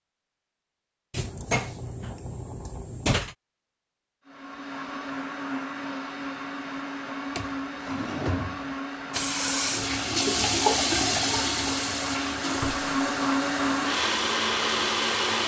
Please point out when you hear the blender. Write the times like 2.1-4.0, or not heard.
4.2-15.4.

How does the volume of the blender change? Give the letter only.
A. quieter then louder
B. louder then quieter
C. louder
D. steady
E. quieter
C.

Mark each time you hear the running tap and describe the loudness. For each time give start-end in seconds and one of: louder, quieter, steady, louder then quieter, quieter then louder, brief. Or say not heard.
9.1-15.4 quieter.